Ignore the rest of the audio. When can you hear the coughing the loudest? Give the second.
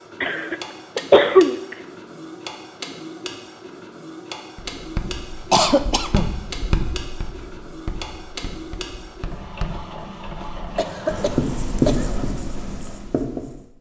1 s.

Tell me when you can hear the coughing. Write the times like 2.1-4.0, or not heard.
0.2-1.8, 5.5-6.3, 10.8-12.2.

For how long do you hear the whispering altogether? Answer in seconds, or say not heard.
not heard.